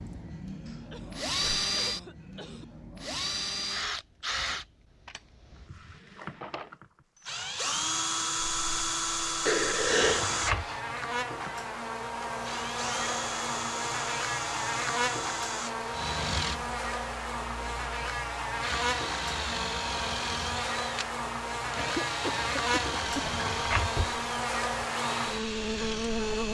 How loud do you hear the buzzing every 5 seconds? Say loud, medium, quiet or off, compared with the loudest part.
off, off, loud, loud, loud, loud.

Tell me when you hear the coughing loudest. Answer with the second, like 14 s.
10 s.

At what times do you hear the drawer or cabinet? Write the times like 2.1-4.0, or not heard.
6.0-6.7, 10.0-10.8, 23.1-24.2.